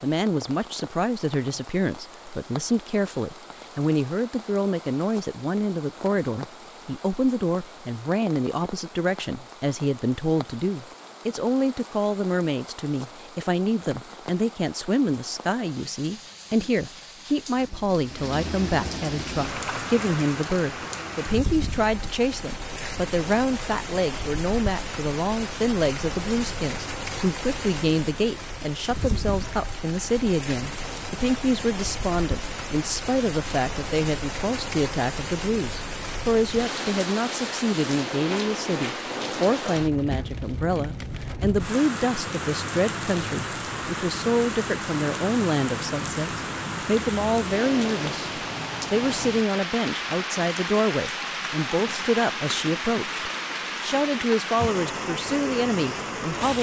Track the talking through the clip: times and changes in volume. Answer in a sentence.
You can hear the talking from 0.0 to 56.5 s, at a steady volume.